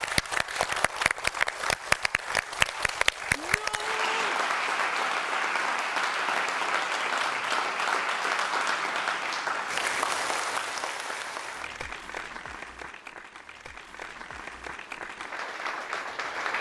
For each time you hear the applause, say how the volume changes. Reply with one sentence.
You can hear the applause from 0.0 to 16.5 s, getting quieter.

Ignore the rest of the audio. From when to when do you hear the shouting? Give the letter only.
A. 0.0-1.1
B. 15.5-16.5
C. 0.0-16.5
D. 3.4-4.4
D.